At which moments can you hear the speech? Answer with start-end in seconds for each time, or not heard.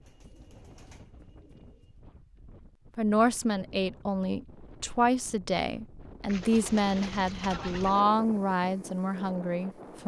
3.0-10.0.